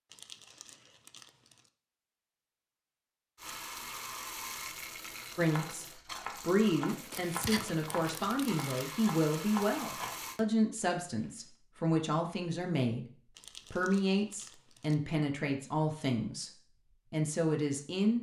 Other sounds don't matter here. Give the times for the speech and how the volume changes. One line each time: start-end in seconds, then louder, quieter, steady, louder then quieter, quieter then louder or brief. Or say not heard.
5.3-18.1 steady.